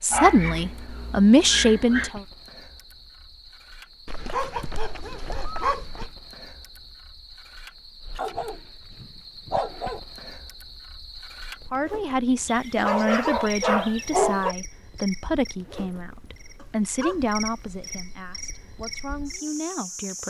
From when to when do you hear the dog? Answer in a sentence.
The dog can be heard from 0.1 to 2.1 s, from 4.0 to 6.1 s, from 8.2 to 10.0 s, from 12.4 to 14.6 s and from 16.6 to 18.1 s.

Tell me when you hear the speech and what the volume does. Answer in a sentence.
The speech can be heard briefly from 0.0 to 2.2 s; and from 11.7 to 20.2 s, getting quieter.